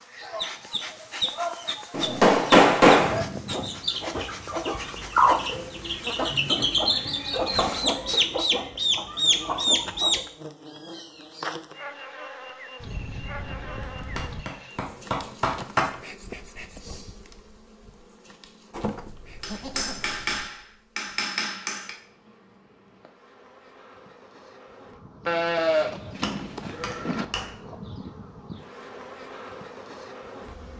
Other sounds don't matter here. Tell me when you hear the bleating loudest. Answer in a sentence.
The volume of the bleating peaks at 26 seconds.